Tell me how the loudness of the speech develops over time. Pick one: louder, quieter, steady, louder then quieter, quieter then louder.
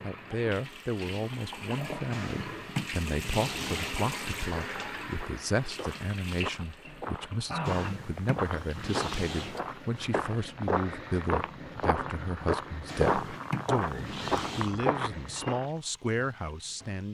steady.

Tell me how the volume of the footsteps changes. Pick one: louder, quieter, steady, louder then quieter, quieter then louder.
louder.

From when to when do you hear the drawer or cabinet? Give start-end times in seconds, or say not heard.
2.1-4.0, 7.7-9.6, 12.8-14.8.